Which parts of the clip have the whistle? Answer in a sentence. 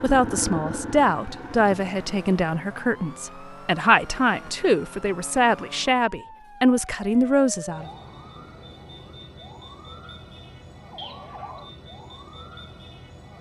The whistle can be heard from 10.9 to 11.6 s.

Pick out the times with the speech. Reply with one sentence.
You can hear the speech from 0.0 to 7.9 s.